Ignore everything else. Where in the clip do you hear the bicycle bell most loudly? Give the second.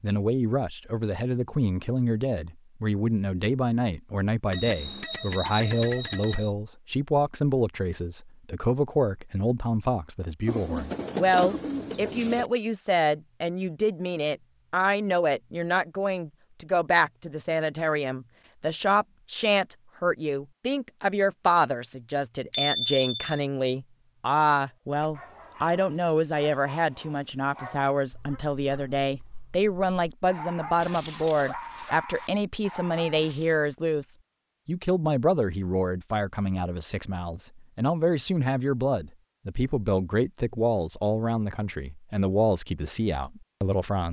23 s.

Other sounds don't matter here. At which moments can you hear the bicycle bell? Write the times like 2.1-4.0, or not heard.
4.5-6.5, 22.5-23.4.